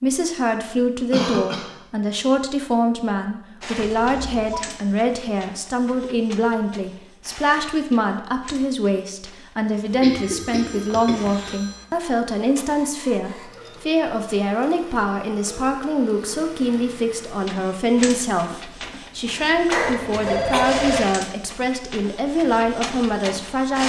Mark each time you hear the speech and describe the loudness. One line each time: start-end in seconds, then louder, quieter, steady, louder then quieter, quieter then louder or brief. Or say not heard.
0.0-23.8 steady.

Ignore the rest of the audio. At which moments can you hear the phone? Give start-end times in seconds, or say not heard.
3.8-4.7, 9.9-11.8, 19.8-21.1.